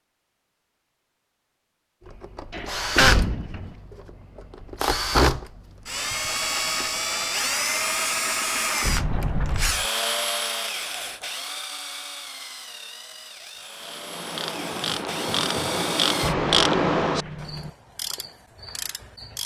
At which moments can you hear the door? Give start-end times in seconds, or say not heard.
2.5-3.8, 8.8-9.8, 16.2-17.7.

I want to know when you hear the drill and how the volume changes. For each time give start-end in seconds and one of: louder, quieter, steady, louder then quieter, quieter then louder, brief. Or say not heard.
2.0-16.4 quieter.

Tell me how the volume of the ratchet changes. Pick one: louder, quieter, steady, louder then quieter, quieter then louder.
louder then quieter.